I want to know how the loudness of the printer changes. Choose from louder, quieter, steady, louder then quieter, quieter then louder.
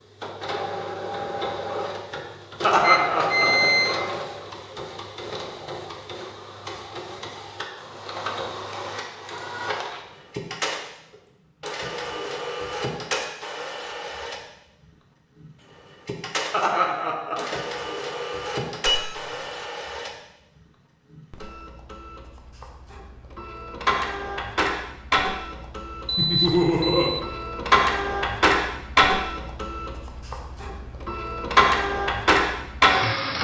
louder.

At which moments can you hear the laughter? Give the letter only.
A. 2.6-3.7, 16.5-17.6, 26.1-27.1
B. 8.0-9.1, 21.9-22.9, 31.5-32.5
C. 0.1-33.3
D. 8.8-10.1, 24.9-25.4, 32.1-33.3
A.